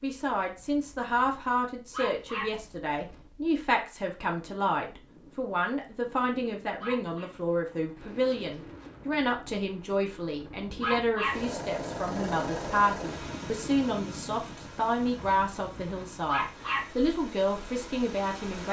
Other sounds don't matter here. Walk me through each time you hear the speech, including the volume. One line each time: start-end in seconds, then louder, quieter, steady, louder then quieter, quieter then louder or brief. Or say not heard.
0.0-18.6 steady.